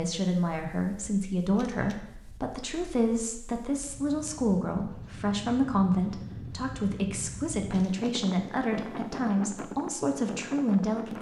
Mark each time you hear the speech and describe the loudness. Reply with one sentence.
The speech can be heard from 0.0 to 11.1 s, at a steady volume.